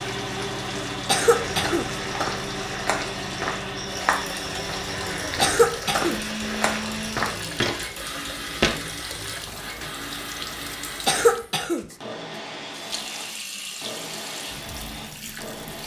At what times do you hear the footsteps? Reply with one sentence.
You can hear the footsteps from 1.4 to 8.8 s.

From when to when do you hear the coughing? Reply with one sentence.
You can hear the coughing from 1.1 to 1.9 s, from 5.4 to 6.2 s and from 11.1 to 11.8 s.